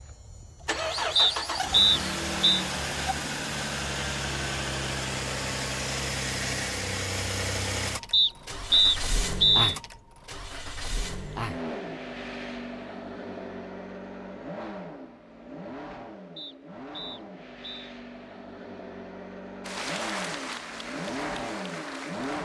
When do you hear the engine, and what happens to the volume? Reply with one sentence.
You can hear the engine from 0.0 to 22.3 s, getting quieter.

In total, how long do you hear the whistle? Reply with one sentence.
You can hear the whistle for 5 seconds altogether.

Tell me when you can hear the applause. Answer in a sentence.
You can hear the applause from 19.6 to 22.3 s.